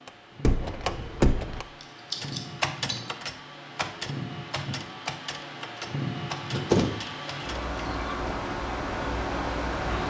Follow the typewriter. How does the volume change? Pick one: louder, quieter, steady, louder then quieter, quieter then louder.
quieter.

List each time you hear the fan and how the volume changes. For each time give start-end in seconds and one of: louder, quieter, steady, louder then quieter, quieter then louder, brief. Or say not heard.
0.0-10.0 louder.